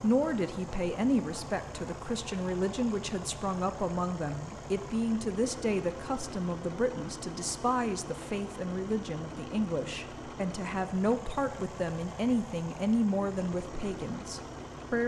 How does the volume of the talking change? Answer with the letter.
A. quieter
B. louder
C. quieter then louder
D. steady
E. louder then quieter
D.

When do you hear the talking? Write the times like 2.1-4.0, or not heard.
0.0-15.0.